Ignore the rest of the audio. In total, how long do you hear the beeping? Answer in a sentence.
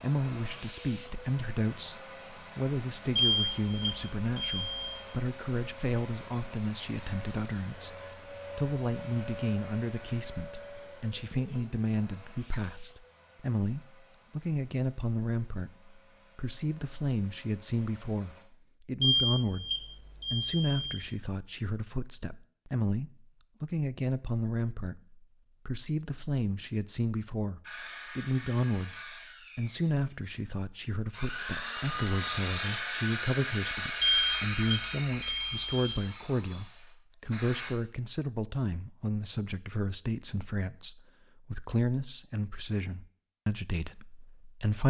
The beeping can be heard for 6 seconds in total.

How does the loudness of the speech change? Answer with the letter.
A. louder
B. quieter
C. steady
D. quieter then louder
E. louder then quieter
C.